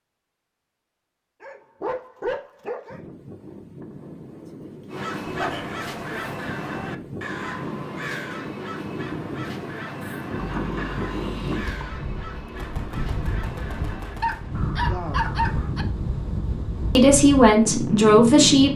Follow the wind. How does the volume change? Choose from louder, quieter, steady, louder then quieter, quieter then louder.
louder.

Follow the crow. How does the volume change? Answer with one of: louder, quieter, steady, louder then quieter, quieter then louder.
quieter.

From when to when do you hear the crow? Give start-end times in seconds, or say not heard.
4.9-15.8.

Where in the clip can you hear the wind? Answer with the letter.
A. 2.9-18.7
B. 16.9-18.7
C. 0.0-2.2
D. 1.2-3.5
A.